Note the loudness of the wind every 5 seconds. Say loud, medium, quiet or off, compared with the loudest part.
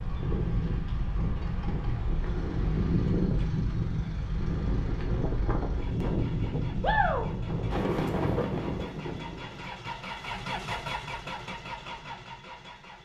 loud, loud, off.